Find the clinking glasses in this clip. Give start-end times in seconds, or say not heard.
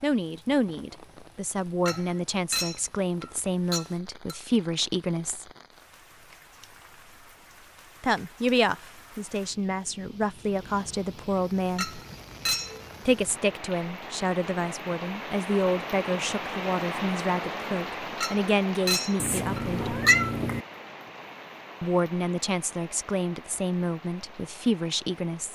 1.9-4.3, 11.8-12.8, 18.2-20.2.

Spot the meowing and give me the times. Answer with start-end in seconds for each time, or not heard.
19.1-20.6.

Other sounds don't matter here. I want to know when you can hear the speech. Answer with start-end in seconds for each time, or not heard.
0.0-5.5, 8.0-12.0, 13.1-19.9, 21.8-25.5.